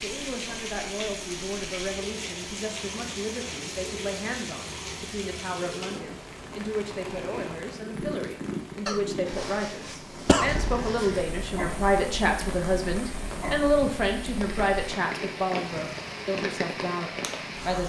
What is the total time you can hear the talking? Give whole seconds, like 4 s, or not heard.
18 s.